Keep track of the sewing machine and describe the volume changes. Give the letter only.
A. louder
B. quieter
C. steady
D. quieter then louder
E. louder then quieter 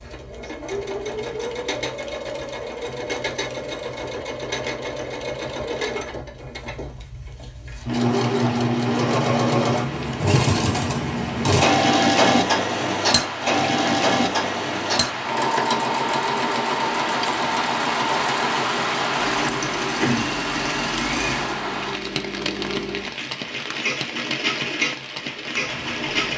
E.